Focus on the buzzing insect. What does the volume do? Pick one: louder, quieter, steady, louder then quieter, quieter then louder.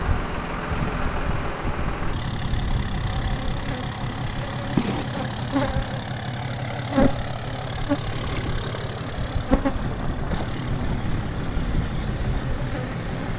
louder then quieter.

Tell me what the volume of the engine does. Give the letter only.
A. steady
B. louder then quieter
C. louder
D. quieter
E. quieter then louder
A.